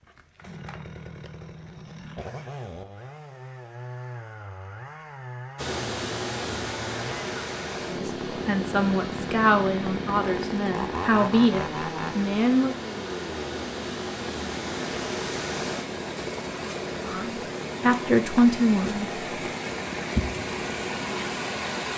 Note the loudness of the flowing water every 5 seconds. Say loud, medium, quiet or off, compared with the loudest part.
off, loud, medium, loud, loud.